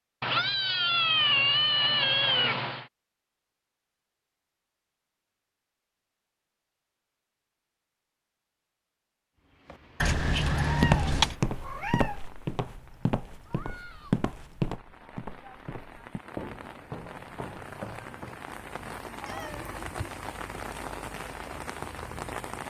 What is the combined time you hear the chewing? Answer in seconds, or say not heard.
not heard.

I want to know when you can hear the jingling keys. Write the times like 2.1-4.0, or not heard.
10.0-11.3.